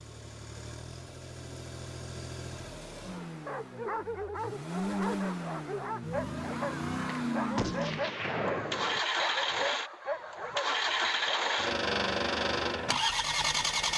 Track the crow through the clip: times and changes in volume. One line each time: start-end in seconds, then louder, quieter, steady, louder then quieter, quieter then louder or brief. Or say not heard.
not heard.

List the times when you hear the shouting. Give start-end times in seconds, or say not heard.
not heard.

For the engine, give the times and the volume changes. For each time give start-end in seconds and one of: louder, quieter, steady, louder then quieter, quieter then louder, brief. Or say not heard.
0.0-13.9 louder.